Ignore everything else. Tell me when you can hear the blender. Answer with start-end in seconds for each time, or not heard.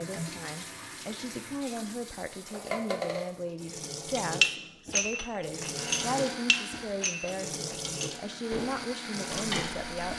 5.8-10.1.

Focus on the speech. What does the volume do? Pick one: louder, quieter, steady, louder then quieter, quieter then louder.
steady.